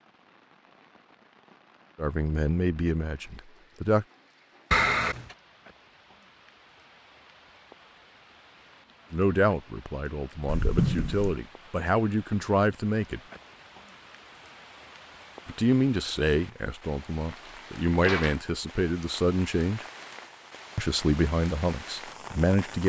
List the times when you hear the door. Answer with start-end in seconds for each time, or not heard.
4.7-5.3, 10.4-11.4, 17.2-18.4.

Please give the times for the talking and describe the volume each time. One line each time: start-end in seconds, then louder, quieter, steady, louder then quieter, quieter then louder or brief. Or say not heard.
1.9-4.0 brief
9.1-13.2 louder
15.4-19.9 quieter then louder
20.8-22.8 brief.